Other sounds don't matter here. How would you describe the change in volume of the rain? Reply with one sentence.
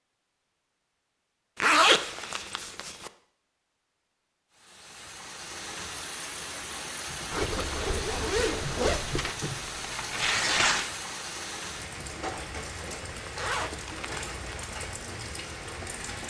The loudness of the rain stays about the same.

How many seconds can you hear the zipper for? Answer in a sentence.
You can hear the zipper for 5 seconds altogether.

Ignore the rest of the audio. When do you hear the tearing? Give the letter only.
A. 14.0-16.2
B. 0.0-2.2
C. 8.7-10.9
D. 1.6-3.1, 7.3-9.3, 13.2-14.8
C.